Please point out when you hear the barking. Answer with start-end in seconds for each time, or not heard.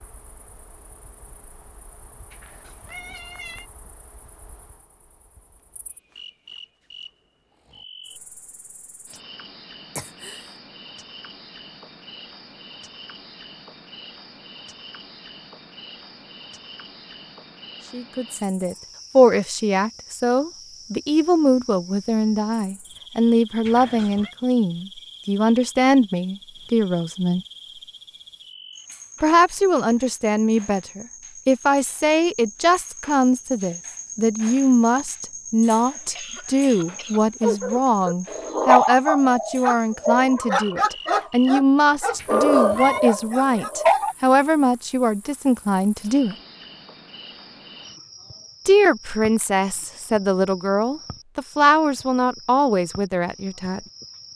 37.4-44.1.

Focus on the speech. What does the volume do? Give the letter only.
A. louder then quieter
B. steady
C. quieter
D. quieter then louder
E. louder
B.